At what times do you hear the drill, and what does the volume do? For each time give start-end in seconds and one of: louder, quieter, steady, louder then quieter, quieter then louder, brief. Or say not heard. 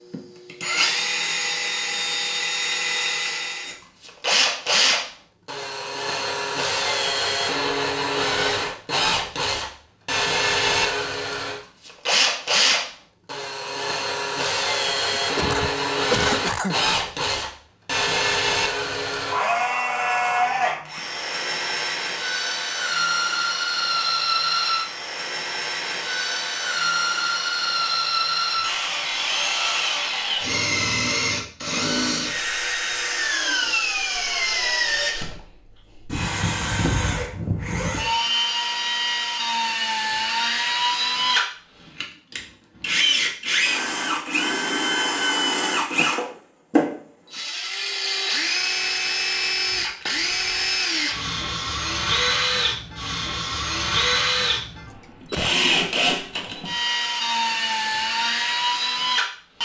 0.1-59.6 steady.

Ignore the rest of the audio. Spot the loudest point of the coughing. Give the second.
16 s.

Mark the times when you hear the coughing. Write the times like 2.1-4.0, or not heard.
15.2-16.8, 55.0-55.5.